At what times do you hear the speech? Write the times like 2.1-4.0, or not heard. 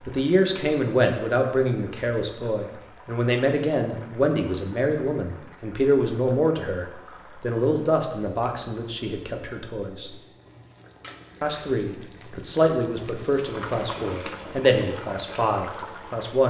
0.0-10.2, 11.4-16.4.